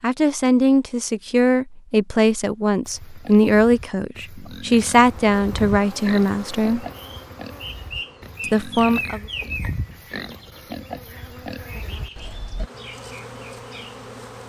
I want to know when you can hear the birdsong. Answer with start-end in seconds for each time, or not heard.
6.9-14.4.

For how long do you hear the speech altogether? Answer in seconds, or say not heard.
8 s.